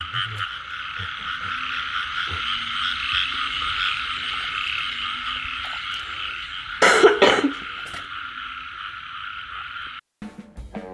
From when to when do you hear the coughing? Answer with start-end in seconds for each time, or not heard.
6.8-8.0.